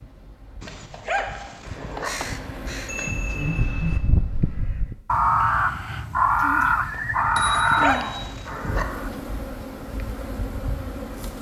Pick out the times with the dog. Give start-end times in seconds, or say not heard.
0.6-2.1, 7.3-8.8.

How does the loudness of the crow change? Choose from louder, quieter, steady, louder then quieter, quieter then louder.
louder.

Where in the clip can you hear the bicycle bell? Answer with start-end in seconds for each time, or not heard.
2.9-4.0, 6.9-8.2.